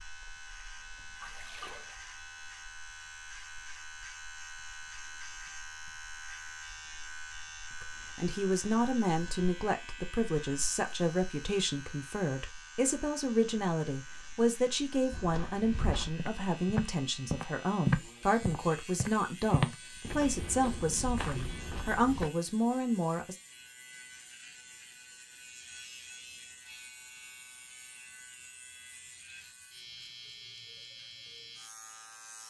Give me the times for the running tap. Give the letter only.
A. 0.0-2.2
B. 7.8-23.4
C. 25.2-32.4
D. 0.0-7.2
A.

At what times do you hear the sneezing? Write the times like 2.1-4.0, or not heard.
not heard.